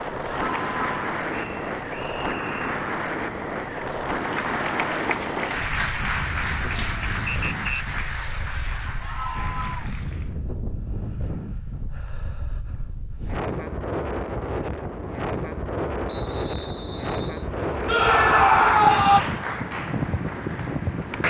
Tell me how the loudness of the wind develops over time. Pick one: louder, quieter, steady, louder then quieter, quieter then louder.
quieter then louder.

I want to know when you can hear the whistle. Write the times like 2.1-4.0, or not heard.
1.3-2.6, 7.2-7.8, 16.1-17.5.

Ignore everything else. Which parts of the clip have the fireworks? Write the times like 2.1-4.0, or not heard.
not heard.